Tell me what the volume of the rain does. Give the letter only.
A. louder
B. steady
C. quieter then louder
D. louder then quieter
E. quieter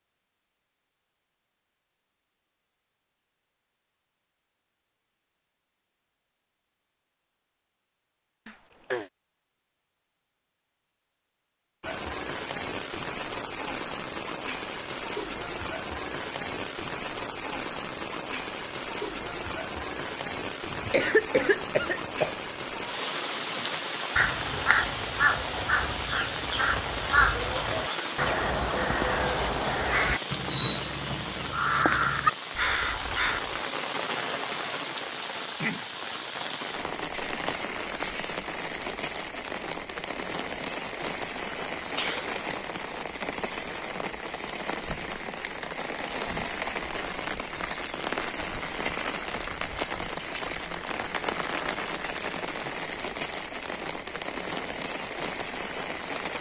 B.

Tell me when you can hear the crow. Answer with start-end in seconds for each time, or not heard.
23.6-33.5.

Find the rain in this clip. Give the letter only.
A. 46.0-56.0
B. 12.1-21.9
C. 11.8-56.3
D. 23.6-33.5
C.